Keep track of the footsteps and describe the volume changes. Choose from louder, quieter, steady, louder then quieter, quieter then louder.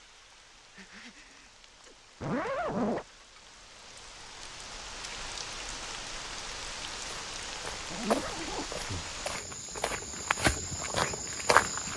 quieter then louder.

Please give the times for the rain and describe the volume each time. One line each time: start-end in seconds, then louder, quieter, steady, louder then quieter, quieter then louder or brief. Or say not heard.
0.0-9.4 louder.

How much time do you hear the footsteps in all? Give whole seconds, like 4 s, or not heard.
5 s.